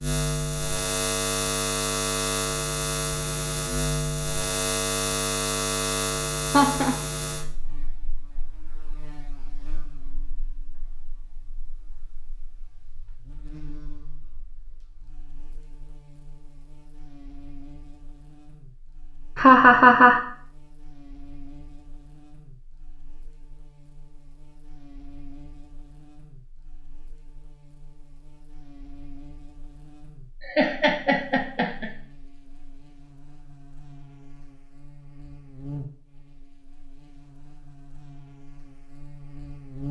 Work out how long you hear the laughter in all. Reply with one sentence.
You can hear the laughter for 3 seconds altogether.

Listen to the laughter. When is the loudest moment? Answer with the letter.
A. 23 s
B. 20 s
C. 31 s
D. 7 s
B.